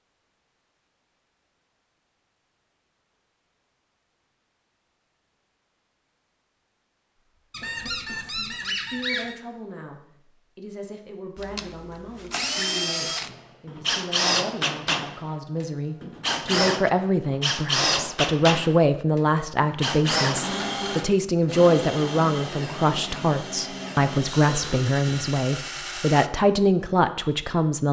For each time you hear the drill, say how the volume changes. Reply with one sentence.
You can hear the drill from 11.3 to 26.3 s, getting quieter.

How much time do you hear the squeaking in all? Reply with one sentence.
You can hear the squeaking for 2 seconds altogether.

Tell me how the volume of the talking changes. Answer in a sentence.
The volume of the talking goes up.